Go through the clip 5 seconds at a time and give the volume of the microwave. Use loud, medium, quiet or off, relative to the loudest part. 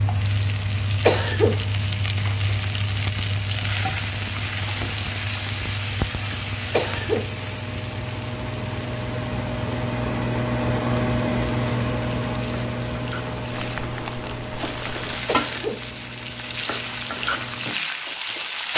quiet, medium, loud, quiet.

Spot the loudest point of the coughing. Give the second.
1 s.